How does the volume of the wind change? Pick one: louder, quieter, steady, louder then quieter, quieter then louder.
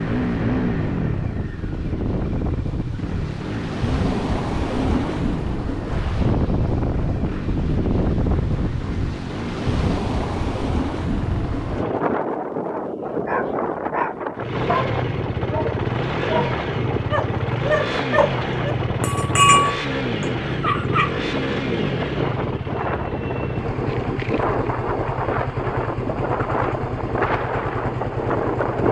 steady.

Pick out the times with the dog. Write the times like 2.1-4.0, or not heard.
13.2-19.9, 20.6-21.1.